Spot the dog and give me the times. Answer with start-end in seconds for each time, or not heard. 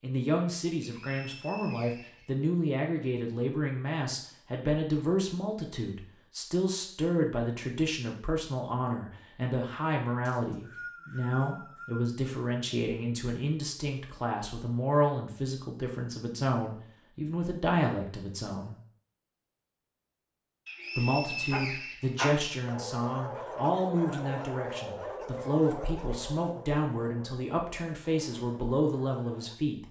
21.3-29.6.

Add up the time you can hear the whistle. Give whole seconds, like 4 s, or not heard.
5 s.